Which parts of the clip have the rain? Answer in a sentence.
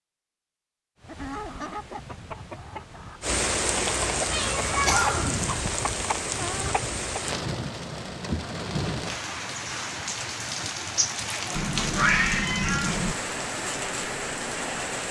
The rain can be heard from 3.2 to 15.0 s.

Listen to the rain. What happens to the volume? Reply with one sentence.
The volume of the rain stays about the same.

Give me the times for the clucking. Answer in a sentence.
The clucking can be heard from 1.0 to 7.2 s.